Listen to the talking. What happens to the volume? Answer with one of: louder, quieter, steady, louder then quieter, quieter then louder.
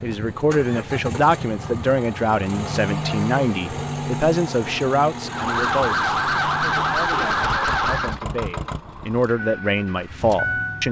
quieter then louder.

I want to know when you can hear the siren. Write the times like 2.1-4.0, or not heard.
5.2-8.2.